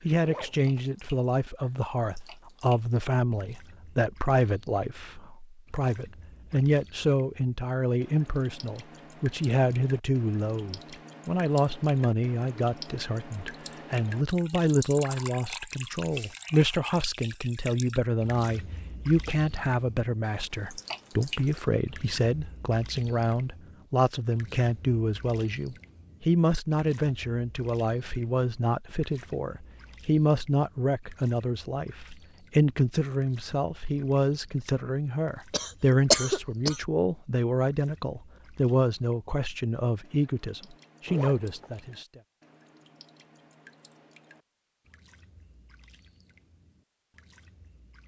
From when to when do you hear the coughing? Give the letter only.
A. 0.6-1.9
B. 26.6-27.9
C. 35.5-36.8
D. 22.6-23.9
C.